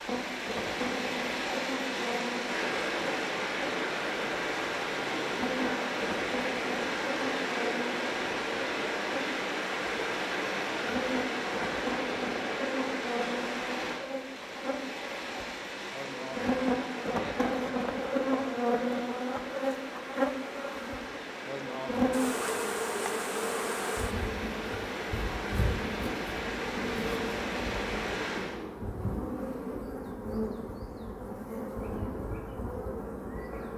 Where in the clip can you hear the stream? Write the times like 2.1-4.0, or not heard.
0.0-28.6.